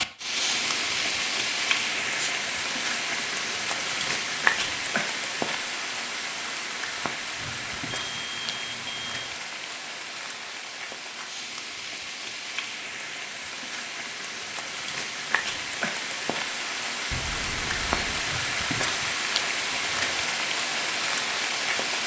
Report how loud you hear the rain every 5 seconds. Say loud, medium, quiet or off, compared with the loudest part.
loud, medium, medium, loud, loud.